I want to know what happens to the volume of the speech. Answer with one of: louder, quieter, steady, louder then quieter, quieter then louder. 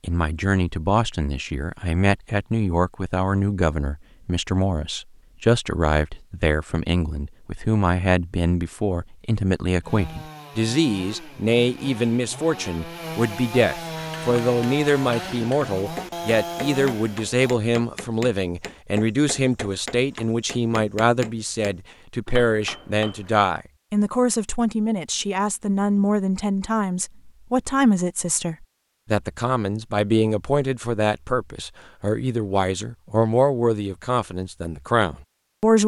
steady.